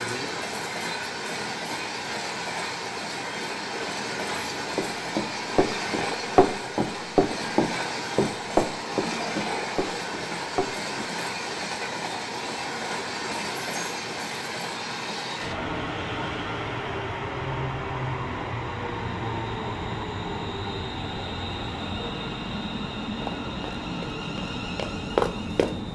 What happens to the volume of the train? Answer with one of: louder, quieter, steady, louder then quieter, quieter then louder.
steady.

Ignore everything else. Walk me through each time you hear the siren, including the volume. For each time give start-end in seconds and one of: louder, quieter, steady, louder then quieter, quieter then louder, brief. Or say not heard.
not heard.